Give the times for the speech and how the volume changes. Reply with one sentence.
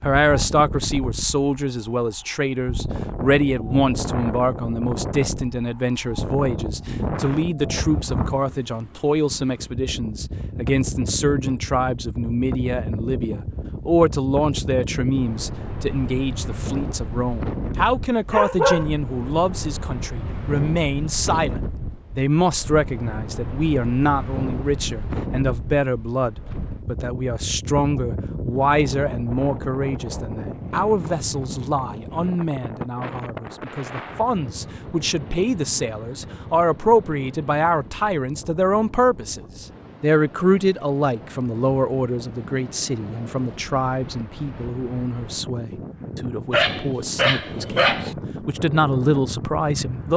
The speech can be heard from 0.0 to 50.1 s, at a steady volume.